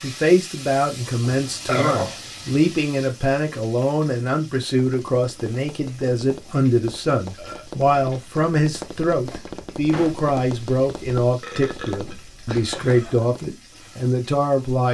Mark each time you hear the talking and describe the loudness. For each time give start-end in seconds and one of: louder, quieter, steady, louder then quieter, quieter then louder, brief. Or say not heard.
0.0-14.8 steady.